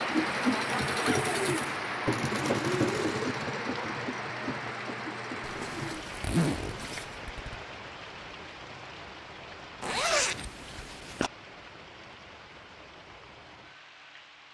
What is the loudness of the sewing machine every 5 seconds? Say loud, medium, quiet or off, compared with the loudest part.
loud, medium, off.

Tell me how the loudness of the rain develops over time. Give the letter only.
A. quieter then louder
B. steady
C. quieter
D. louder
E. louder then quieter
C.